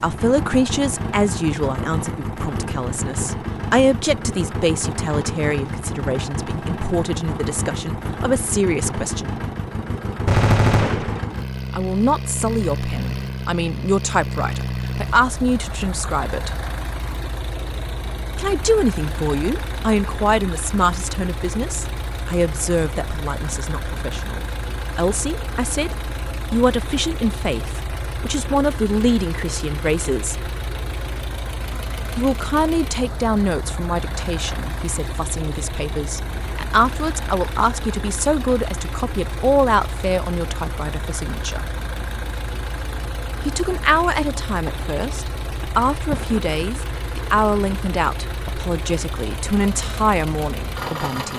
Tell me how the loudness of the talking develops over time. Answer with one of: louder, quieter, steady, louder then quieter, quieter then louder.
steady.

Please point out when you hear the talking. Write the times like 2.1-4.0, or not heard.
0.0-9.4, 11.7-16.5, 18.4-30.4, 32.1-41.6, 43.5-51.3.